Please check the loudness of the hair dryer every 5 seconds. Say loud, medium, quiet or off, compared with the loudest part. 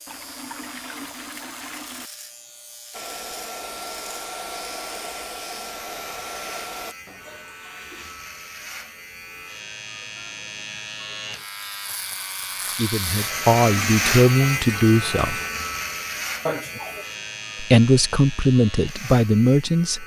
loud, loud, off, off.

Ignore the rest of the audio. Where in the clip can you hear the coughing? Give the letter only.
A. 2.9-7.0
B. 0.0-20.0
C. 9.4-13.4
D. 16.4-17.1
D.